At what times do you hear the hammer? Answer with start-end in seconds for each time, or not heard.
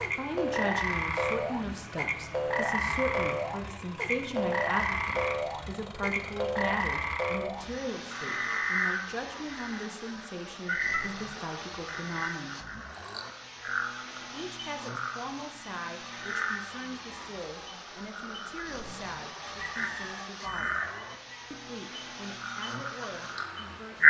not heard.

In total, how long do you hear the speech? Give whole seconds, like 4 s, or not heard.
22 s.